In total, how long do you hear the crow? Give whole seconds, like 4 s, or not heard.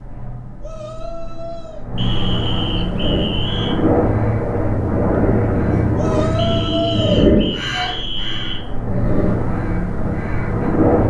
8 s.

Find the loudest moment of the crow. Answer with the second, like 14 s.
7 s.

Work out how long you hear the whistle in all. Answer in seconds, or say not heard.
4 s.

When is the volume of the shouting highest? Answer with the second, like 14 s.
7 s.